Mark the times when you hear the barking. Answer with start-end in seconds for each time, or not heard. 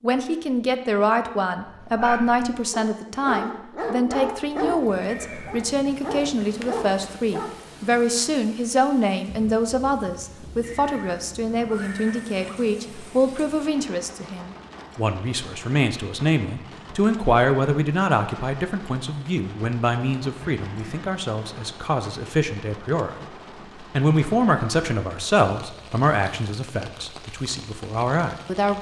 1.6-8.1.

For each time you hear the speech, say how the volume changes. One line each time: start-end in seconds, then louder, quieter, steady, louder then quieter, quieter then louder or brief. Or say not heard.
0.0-28.7 steady.